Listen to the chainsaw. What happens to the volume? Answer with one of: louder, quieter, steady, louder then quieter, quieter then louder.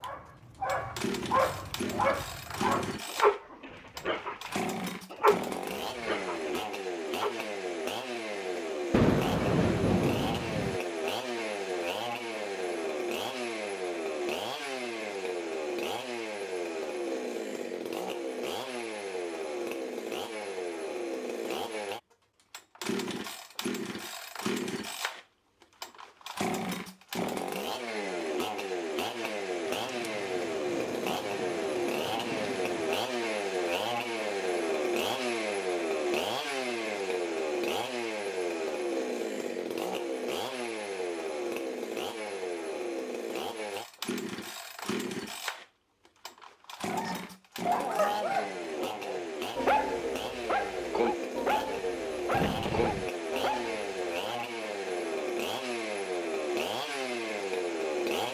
steady.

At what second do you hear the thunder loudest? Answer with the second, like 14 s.
9 s.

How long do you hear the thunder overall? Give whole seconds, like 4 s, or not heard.
6 s.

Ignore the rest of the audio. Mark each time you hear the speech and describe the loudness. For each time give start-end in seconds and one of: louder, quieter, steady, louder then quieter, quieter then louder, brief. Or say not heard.
not heard.